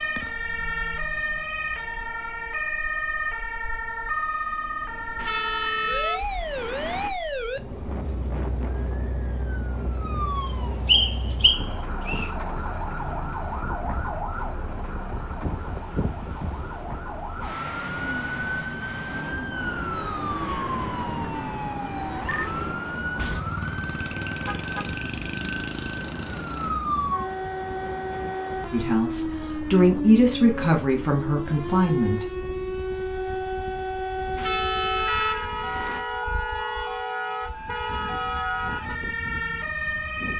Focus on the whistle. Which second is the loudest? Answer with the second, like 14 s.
11 s.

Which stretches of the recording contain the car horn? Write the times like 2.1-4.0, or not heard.
5.2-7.1, 24.4-24.9, 34.4-36.0.